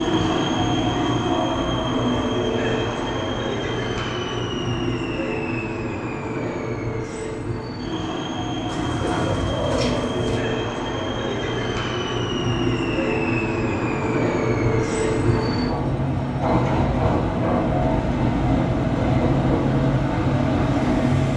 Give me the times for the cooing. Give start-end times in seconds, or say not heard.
8.7-10.4.